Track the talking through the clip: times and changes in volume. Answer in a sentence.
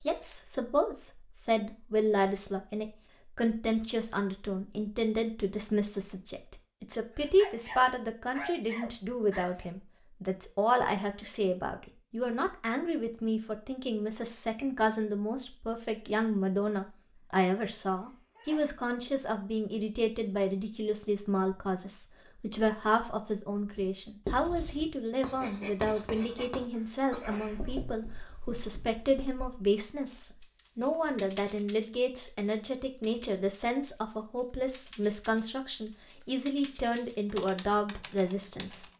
The talking can be heard from 0.0 to 38.9 s, at a steady volume.